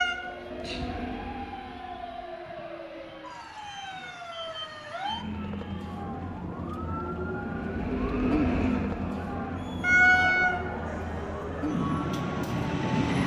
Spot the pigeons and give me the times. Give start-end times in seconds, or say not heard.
not heard.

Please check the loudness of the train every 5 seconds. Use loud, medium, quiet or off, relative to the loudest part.
medium, loud, loud.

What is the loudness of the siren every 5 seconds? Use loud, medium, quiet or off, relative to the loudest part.
medium, loud, loud.